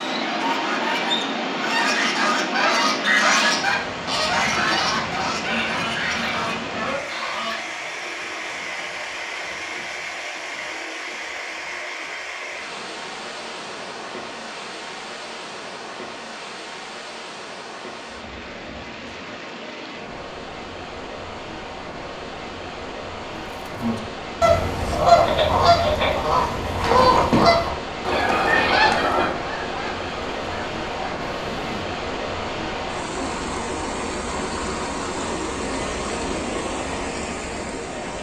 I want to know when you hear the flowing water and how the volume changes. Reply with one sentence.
The flowing water can be heard from 0.0 to 38.1 s, getting quieter then louder.